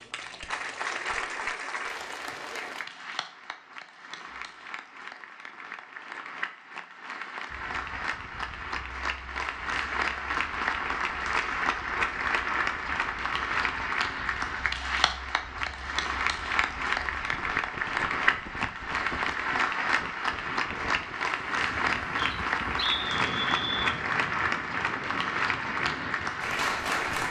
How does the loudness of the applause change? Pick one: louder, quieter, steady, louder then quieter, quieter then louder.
louder.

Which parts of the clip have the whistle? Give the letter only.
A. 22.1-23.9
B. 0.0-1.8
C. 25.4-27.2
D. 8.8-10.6
A.